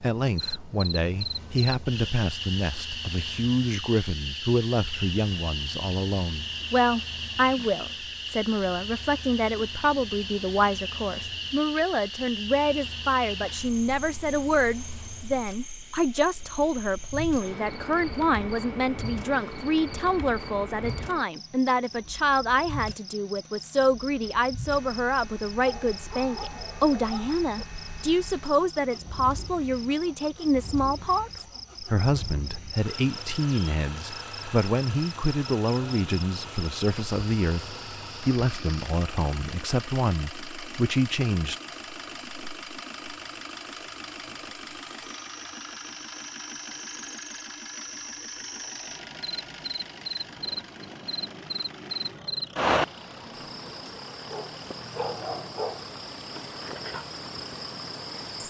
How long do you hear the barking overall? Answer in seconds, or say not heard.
4 s.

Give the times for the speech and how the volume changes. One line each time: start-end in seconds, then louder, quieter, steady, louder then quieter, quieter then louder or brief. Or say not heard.
0.0-41.5 steady.